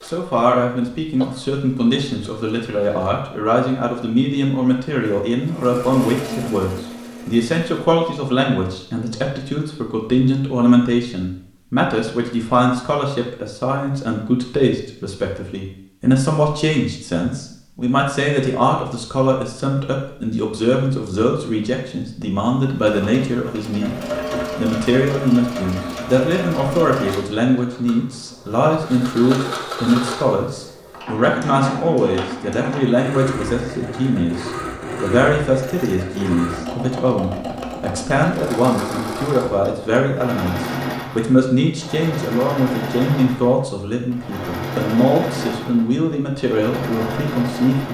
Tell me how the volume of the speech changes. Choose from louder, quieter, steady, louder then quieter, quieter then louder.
steady.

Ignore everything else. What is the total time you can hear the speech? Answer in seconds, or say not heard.
48 s.